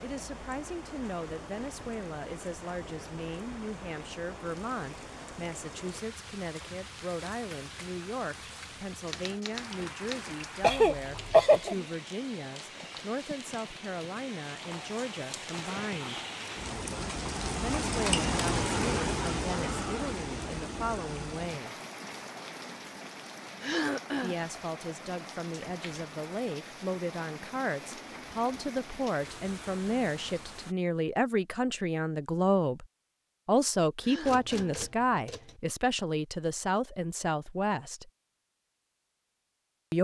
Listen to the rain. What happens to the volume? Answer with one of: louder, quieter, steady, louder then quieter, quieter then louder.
louder then quieter.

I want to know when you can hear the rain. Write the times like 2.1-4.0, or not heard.
0.0-30.8.